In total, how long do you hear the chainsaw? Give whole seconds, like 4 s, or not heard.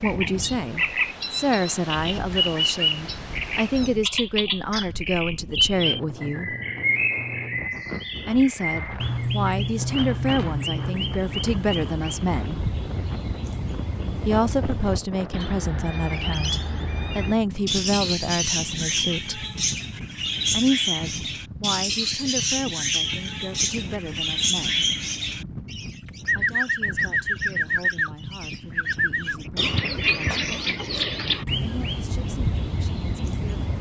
not heard.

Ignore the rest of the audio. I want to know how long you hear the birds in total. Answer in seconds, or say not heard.
34 s.